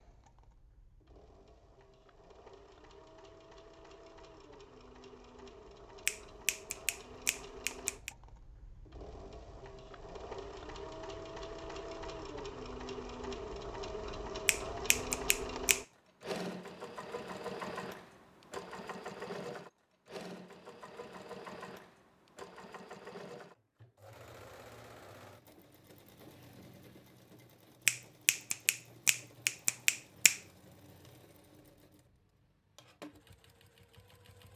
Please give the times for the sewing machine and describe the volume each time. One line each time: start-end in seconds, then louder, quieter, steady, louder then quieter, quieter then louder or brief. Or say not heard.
0.0-34.5 louder then quieter.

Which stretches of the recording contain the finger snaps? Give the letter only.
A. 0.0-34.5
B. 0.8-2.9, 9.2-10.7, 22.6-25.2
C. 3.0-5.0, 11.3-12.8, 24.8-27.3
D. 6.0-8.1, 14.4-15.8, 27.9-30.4
D.